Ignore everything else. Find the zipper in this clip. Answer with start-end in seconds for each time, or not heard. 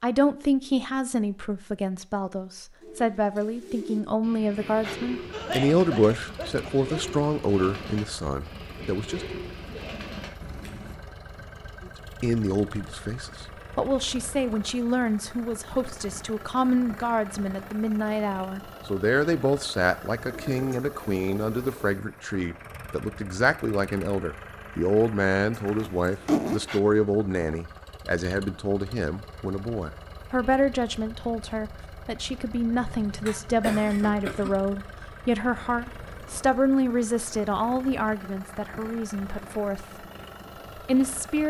25.6-26.6.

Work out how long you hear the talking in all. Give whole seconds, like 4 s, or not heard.
38 s.